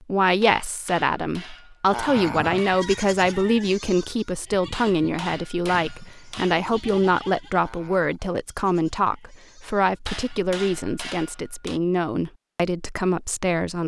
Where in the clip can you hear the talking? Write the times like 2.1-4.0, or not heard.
0.1-13.8.